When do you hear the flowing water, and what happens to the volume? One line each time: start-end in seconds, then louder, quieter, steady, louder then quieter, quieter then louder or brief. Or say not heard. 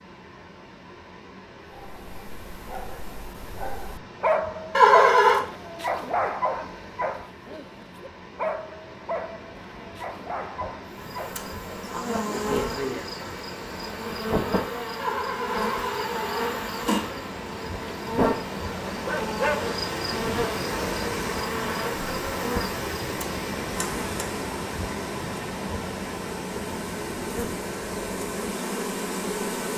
0.0-29.7 louder.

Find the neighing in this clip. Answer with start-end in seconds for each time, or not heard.
4.7-5.4, 14.9-17.0.